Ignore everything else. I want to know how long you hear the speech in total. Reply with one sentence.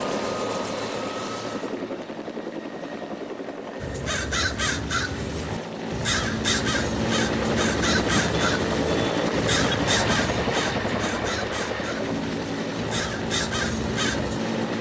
The speech can't be heard in this clip.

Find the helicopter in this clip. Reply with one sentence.
The helicopter can be heard from 0.0 to 14.7 s.